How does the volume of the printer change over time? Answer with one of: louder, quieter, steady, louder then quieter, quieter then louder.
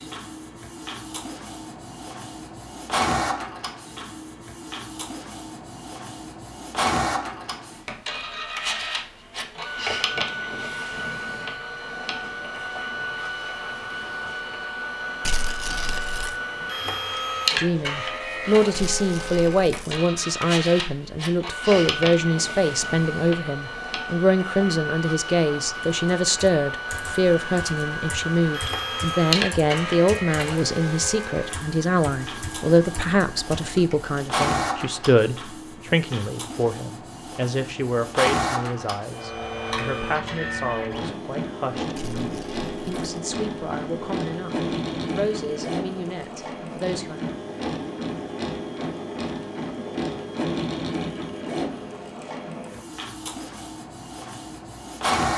steady.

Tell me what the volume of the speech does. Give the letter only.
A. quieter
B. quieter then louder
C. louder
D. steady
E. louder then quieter
A.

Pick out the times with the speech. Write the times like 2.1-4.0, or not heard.
17.6-47.2.